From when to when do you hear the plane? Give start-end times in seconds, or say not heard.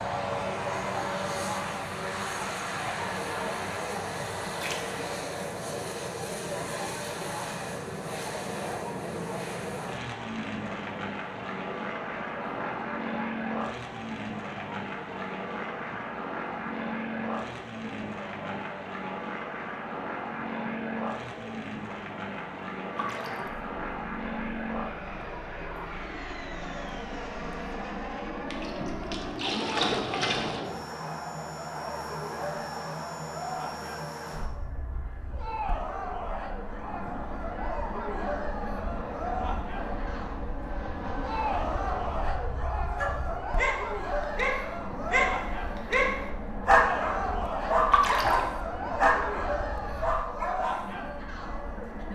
0.0-52.1.